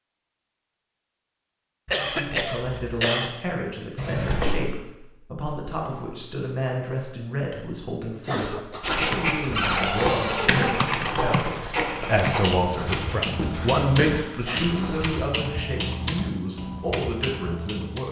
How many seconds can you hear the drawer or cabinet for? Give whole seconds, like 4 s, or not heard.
2 s.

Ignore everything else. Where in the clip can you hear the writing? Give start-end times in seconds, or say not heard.
8.8-15.2.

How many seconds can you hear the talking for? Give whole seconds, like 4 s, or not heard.
16 s.